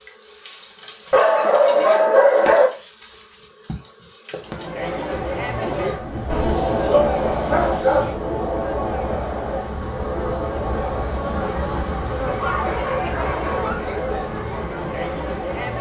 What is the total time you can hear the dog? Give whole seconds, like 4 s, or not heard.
5 s.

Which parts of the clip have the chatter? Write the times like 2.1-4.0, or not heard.
4.4-15.7.